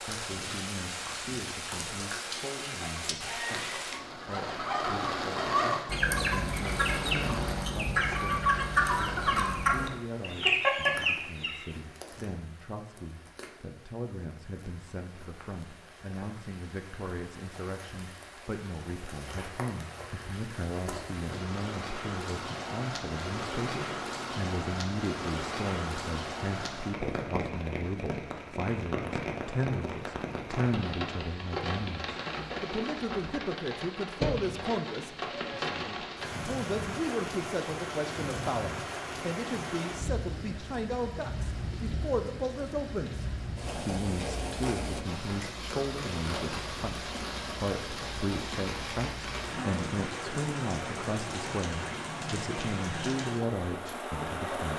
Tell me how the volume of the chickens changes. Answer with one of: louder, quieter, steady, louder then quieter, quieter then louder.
louder.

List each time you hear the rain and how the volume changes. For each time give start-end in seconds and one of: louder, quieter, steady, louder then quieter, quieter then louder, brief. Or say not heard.
0.0-54.7 quieter then louder.